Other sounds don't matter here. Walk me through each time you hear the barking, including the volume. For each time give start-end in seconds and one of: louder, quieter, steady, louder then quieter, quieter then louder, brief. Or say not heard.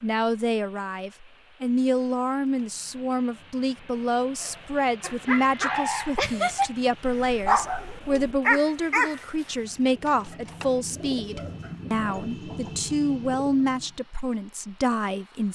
4.5-9.6 louder.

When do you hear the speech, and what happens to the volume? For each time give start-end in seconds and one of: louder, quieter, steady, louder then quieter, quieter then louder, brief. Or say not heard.
0.0-15.5 steady.